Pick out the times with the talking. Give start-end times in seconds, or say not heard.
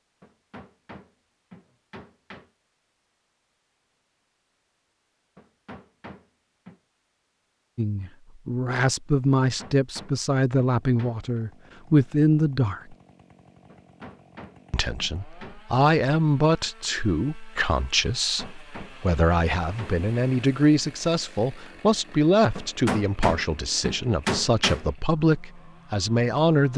7.8-12.9, 14.7-26.7.